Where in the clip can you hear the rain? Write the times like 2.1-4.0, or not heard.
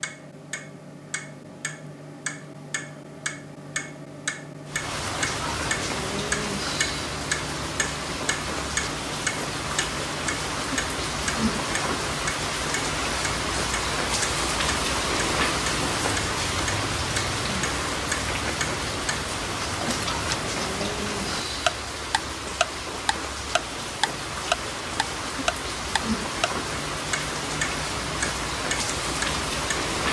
4.7-30.0.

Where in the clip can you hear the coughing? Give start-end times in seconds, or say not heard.
not heard.